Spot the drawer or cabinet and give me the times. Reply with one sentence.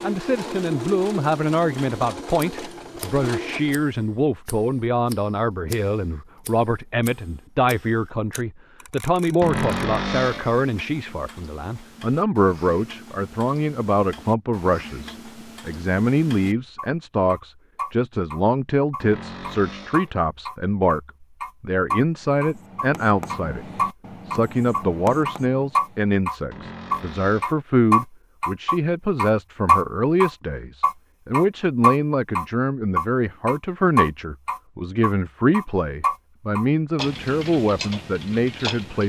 You can hear the drawer or cabinet from 9.4 to 10.6 s, from 19.0 to 20.1 s and from 26.5 to 27.6 s.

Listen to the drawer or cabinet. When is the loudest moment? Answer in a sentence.
The volume of the drawer or cabinet peaks at 10 seconds.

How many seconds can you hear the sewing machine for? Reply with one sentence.
The sewing machine can be heard for 4 seconds in total.